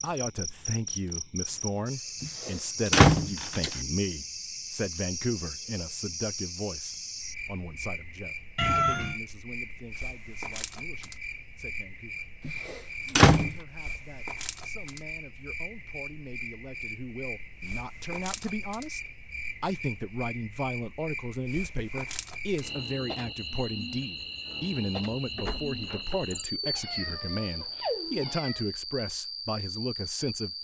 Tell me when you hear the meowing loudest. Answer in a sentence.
The volume of the meowing peaks at 9 seconds.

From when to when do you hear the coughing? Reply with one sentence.
The coughing can't be heard in this clip.